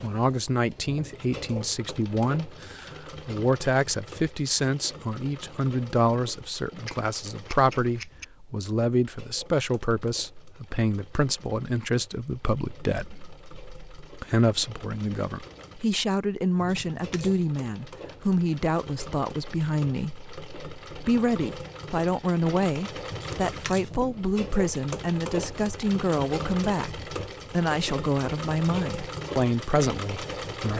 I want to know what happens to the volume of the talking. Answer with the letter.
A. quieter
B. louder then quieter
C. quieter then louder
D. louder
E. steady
E.